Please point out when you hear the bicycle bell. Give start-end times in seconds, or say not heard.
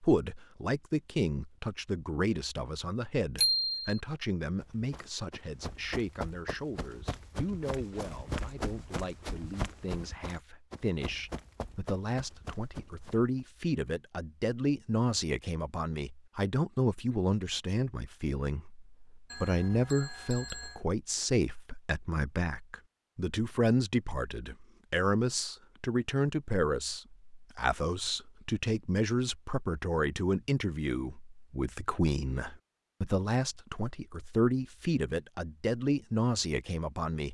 3.4-4.0, 19.3-20.8.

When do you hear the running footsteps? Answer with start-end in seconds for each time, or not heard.
4.6-13.4.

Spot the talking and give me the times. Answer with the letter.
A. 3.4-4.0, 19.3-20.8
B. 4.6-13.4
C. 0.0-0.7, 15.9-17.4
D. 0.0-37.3
D.